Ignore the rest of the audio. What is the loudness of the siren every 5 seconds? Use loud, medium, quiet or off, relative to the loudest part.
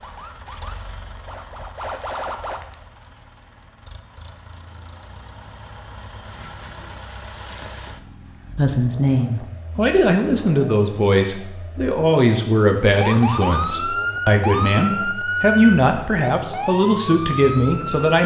medium, off, loud, loud.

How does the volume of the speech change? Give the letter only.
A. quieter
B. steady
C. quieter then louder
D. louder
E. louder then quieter
B.